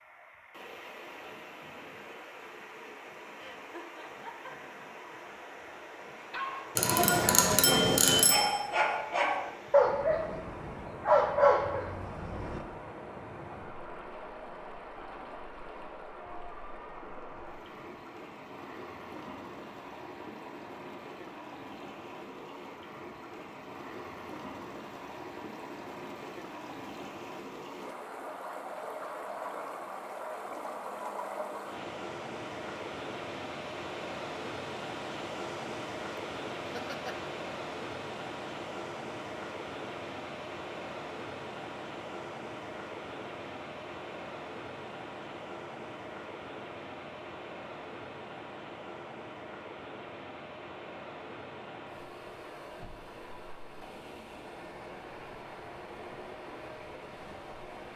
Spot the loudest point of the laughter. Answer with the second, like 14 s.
37 s.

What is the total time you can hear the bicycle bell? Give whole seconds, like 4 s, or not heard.
2 s.